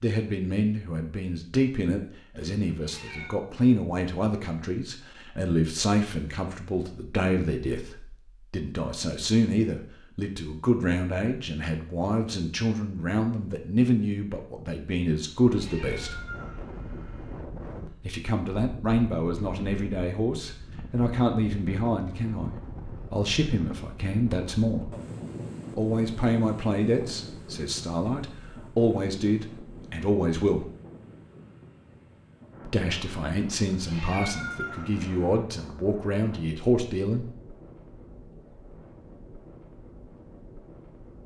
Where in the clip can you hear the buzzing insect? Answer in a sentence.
The buzzing insect can't be heard in this clip.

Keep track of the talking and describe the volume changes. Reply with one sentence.
The loudness of the talking stays about the same.